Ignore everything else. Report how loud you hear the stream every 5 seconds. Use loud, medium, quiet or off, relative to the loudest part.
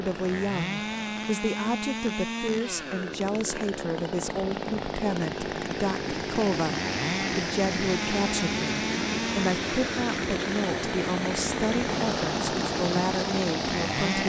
quiet, loud, loud.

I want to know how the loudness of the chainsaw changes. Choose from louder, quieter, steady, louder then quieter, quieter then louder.
steady.